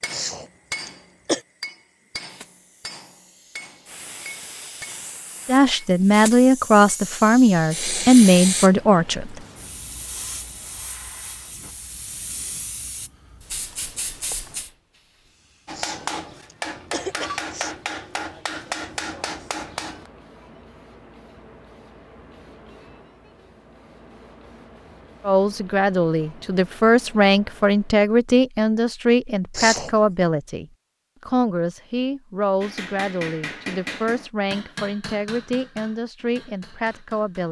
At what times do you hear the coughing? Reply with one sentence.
You can hear the coughing from 0.1 to 1.4 s, from 15.7 to 17.8 s and from 29.5 to 29.9 s.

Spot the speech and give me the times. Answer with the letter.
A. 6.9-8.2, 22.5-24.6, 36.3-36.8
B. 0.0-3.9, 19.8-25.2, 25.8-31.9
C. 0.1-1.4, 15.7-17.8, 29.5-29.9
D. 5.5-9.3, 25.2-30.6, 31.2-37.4
D.